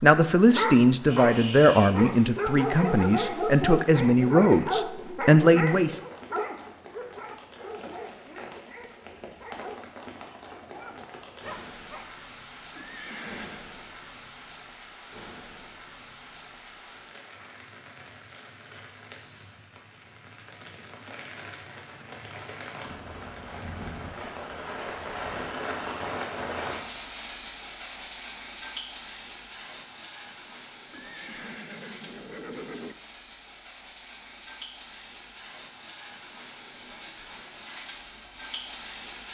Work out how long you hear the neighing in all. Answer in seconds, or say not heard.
3 s.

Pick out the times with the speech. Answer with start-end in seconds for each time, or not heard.
0.0-6.0.